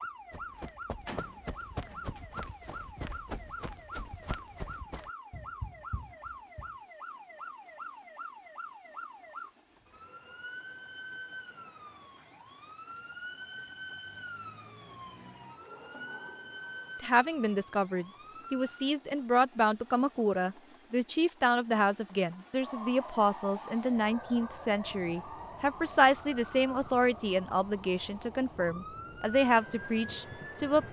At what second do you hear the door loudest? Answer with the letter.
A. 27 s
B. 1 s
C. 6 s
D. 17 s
B.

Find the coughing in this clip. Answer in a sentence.
You can't hear the coughing here.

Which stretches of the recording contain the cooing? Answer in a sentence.
The cooing can't be heard in this clip.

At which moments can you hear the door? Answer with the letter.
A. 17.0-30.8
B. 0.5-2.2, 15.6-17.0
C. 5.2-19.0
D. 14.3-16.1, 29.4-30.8
B.